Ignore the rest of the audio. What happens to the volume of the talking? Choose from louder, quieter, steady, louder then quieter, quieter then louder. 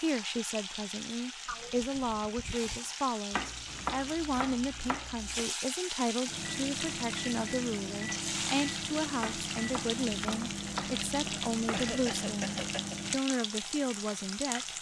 steady.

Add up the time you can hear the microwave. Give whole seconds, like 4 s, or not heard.
7 s.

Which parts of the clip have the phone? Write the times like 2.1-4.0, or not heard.
not heard.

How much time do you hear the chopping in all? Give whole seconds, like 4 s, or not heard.
5 s.